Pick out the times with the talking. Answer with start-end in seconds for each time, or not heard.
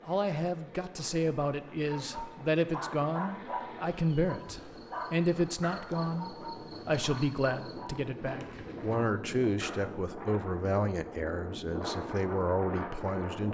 0.0-13.4.